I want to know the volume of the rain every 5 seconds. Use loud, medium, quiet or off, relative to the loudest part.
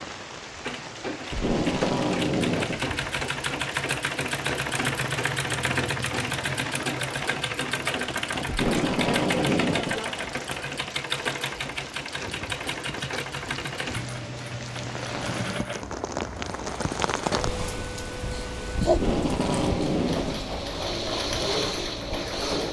medium, medium, medium, loud, medium.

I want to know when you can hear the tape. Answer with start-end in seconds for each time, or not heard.
1.3-2.9, 8.4-10.1, 18.9-20.4.